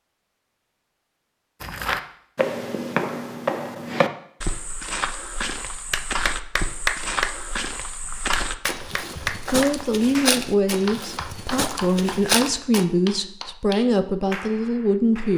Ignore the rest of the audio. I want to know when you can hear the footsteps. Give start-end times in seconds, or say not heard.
1.6-12.8.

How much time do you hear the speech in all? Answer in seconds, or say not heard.
6 s.